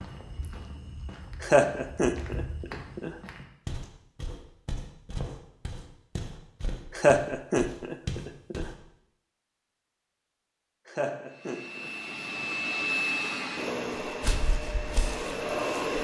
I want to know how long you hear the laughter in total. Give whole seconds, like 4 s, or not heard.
5 s.